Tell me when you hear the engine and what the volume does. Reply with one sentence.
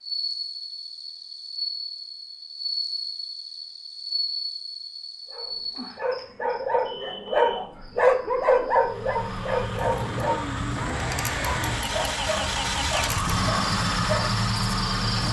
The engine can be heard from 8.8 to 15.2 s, getting louder.